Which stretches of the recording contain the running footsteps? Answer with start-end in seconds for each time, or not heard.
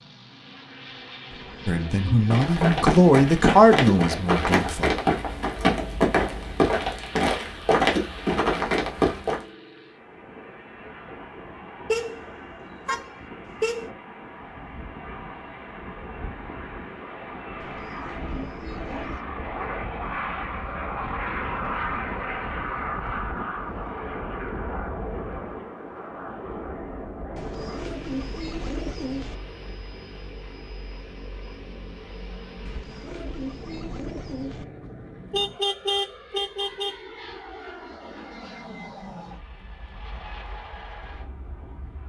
2.3-9.4.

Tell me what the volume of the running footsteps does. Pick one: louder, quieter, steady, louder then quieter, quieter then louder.
steady.